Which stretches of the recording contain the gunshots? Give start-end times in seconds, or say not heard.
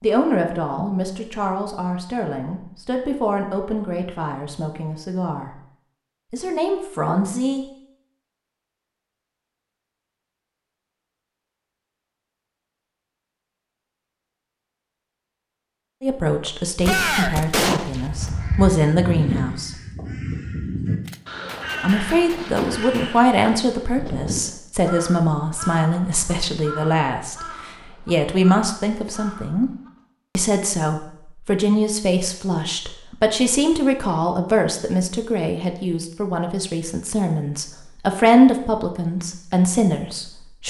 16.8-18.3, 21.0-23.2.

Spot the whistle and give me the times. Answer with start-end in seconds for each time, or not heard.
not heard.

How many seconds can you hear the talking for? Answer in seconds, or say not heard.
29 s.